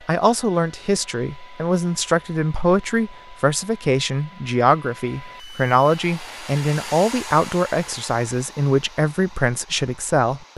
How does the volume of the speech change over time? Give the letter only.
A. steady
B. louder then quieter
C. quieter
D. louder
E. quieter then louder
A.